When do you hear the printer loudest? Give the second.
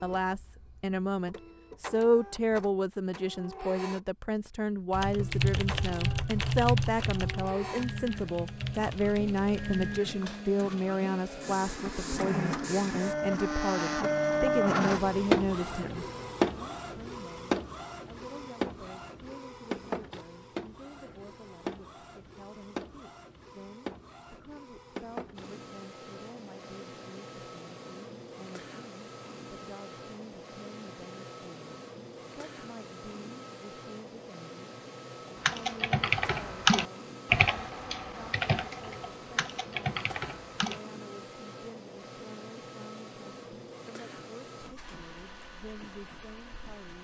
15 s.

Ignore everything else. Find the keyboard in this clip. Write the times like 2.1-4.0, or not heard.
4.9-10.4, 35.4-40.8.